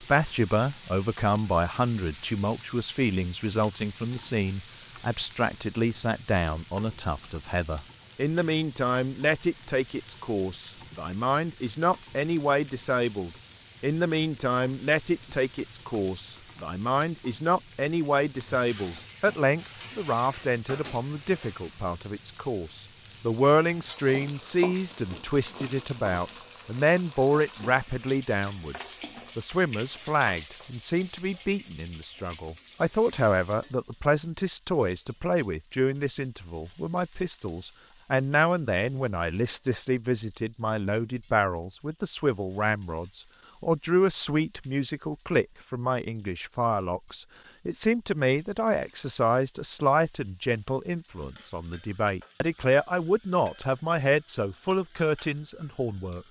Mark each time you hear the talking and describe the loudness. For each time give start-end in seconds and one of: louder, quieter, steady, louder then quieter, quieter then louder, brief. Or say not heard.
0.0-56.2 steady.